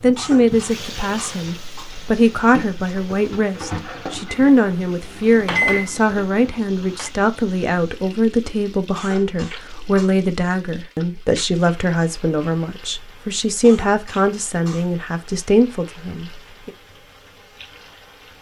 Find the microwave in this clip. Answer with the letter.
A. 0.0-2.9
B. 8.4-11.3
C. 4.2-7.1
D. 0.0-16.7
C.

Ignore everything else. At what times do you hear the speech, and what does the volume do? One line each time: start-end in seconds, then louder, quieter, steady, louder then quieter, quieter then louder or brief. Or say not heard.
0.0-16.7 steady.